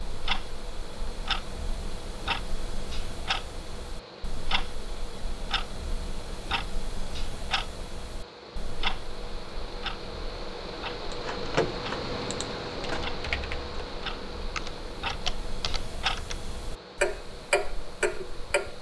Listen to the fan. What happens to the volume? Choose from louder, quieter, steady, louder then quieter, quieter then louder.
louder then quieter.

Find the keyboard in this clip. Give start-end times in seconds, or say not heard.
11.1-16.4.